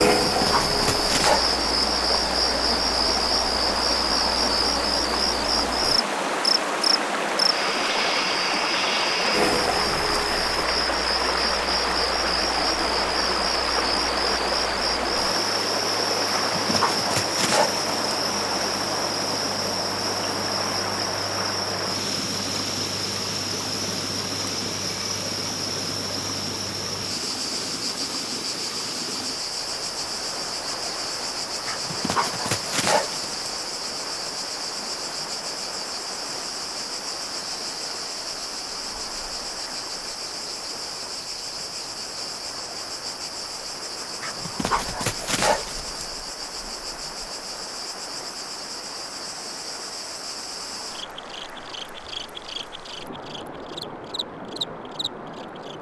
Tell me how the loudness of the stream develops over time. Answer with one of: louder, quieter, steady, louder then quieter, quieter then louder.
quieter.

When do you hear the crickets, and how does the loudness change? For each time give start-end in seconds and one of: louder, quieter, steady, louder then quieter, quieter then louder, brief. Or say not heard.
0.0-55.7 quieter.